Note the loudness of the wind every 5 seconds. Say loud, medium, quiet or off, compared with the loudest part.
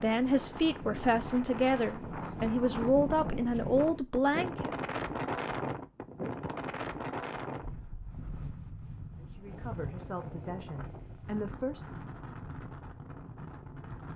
loud, loud, medium.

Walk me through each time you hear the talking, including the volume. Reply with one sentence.
The talking can be heard from 0.0 to 4.8 s, at a steady volume; and briefly from 9.2 to 11.8 s.